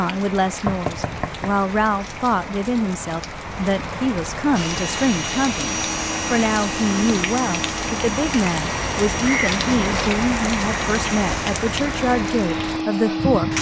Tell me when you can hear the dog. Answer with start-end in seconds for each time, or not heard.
not heard.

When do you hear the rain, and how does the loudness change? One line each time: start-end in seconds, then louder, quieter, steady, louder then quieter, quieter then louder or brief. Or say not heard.
0.0-13.5 louder.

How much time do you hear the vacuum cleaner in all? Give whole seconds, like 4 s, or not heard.
9 s.